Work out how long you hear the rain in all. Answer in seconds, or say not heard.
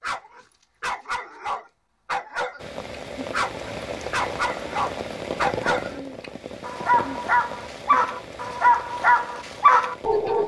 8 s.